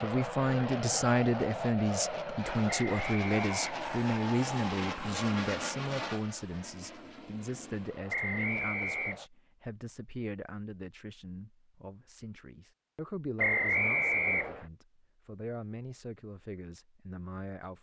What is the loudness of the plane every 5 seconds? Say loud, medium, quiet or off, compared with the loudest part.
loud, medium, off, off.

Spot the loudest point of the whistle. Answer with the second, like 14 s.
14 s.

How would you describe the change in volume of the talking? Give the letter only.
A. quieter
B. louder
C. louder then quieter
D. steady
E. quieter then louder
A.